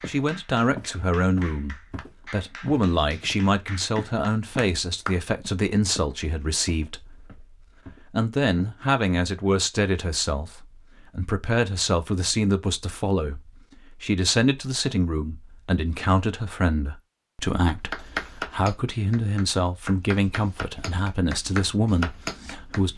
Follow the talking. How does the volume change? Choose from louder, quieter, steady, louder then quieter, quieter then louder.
steady.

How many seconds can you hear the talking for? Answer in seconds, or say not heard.
23 s.